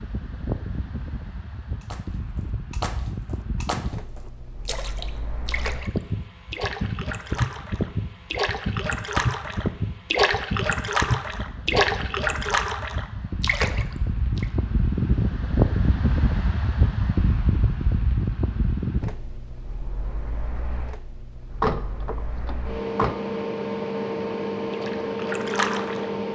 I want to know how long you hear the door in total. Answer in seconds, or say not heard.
2 s.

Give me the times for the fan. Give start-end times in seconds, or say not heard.
0.0-26.3.